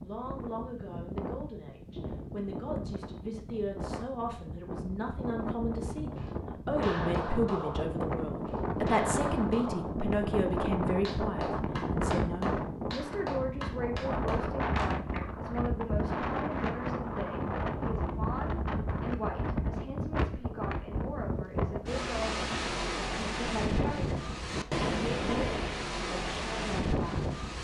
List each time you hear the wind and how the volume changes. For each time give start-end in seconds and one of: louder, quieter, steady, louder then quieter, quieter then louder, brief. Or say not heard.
0.0-27.5 louder.